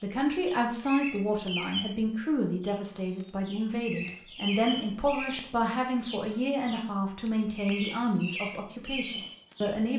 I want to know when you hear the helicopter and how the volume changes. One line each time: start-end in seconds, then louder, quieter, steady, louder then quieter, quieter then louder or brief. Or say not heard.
not heard.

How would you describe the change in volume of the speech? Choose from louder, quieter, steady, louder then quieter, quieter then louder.
steady.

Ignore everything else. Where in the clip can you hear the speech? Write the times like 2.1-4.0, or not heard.
0.0-9.9.